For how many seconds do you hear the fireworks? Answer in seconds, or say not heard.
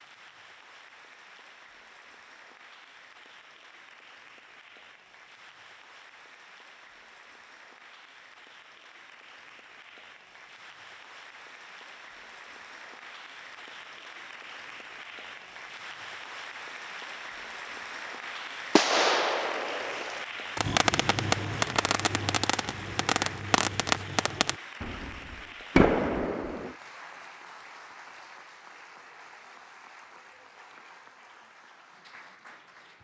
8 s.